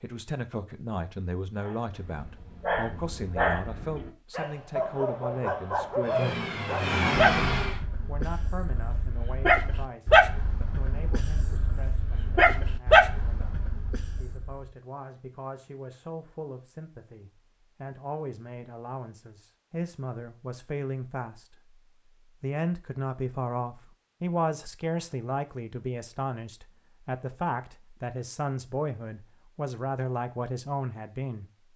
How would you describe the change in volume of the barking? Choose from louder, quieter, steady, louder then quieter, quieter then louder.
louder.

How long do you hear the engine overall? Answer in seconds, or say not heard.
2 s.